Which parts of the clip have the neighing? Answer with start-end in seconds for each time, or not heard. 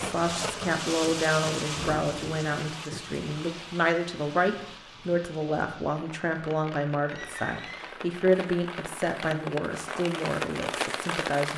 7.0-8.0.